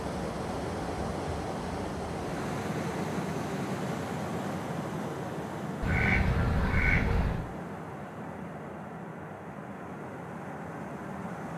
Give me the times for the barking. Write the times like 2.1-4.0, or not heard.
not heard.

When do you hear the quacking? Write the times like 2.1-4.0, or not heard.
5.8-7.5.